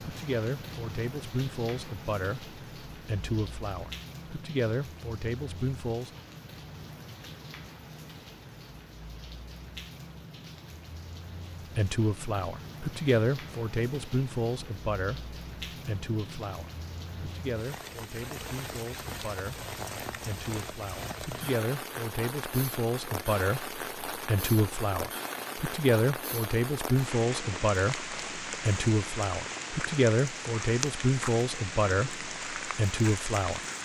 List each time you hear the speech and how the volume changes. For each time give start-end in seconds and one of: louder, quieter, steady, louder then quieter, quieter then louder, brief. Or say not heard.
0.0-6.1 steady
11.8-33.6 quieter then louder.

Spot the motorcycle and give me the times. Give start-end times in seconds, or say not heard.
not heard.